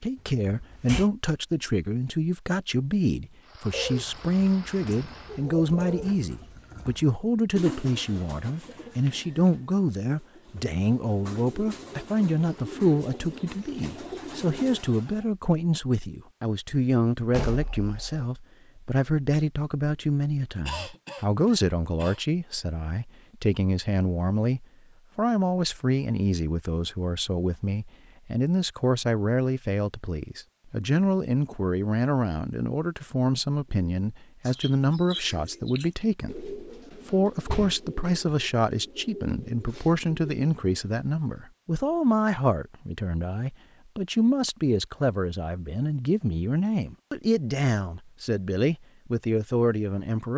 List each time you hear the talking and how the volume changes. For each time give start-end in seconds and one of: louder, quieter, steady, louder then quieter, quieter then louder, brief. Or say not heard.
0.0-50.3 steady.